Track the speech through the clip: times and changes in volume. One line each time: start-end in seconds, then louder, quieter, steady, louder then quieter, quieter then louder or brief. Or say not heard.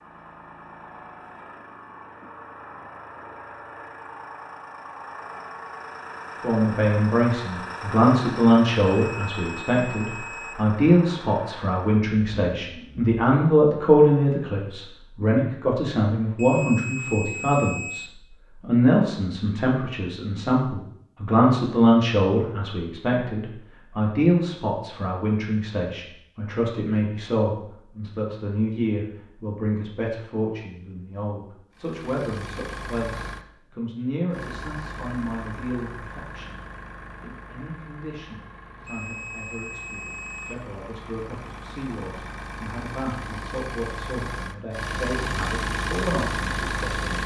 6.4-47.2 quieter.